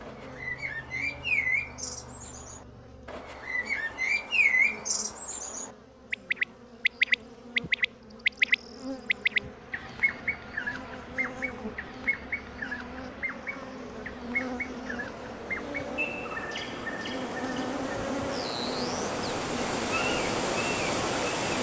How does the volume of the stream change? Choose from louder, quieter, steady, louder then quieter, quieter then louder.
louder.